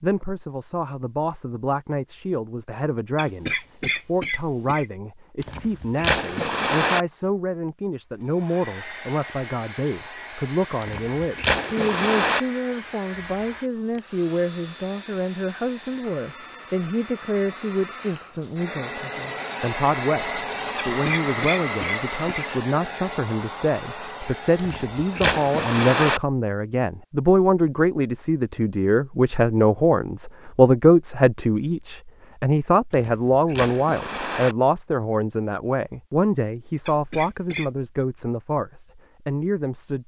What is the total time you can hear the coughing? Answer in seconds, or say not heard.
4 s.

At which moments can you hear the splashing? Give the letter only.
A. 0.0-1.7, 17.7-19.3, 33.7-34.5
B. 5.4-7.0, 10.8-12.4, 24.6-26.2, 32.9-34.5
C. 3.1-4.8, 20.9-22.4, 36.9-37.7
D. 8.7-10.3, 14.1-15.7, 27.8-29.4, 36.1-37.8
B.